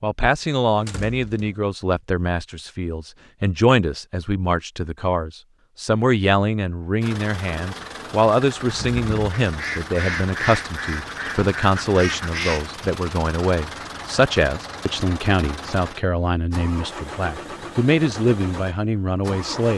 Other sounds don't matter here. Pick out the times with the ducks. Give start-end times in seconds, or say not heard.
8.7-12.8.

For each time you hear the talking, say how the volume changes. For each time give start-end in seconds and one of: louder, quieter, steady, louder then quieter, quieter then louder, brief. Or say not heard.
0.0-19.7 steady.